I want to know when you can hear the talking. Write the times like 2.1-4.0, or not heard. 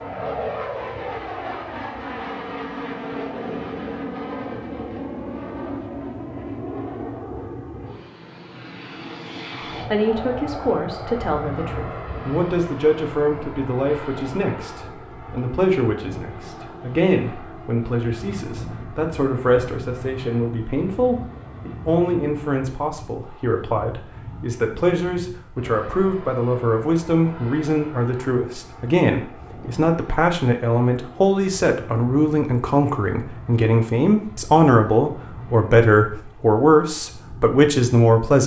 9.9-38.4.